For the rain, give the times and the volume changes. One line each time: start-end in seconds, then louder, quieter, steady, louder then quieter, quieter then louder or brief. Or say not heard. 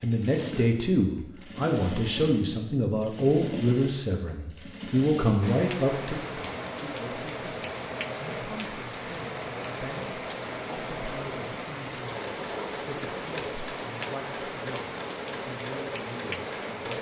5.4-16.9 steady.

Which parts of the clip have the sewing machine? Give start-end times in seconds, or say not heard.
0.0-16.9.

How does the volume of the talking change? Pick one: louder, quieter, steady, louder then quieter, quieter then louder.
quieter.